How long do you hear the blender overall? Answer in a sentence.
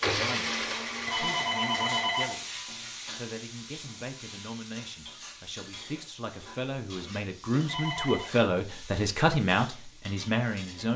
The blender can be heard for 2 seconds in total.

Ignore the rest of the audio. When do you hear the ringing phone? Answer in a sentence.
You can hear the ringing phone from 1.1 to 2.5 s and from 7.7 to 8.3 s.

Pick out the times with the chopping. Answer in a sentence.
The chopping can't be heard in this clip.